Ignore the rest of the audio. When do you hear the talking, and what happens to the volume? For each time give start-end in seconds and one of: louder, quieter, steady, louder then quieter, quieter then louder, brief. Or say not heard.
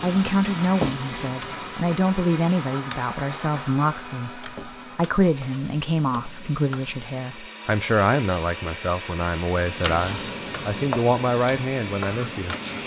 0.0-12.8 steady.